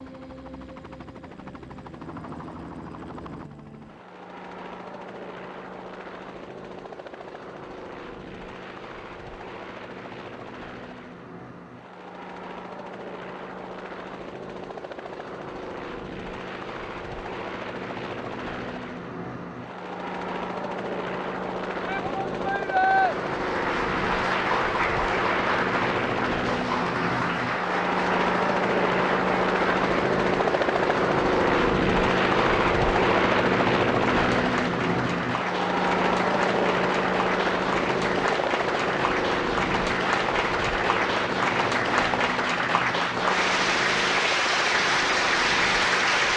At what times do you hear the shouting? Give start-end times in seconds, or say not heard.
21.9-23.1.